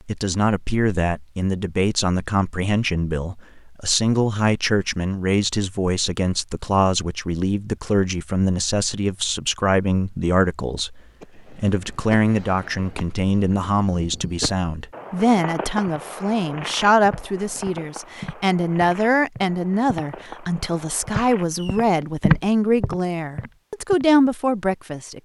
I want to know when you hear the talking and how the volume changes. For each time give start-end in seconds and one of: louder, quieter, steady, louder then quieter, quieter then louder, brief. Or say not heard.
0.1-25.2 steady.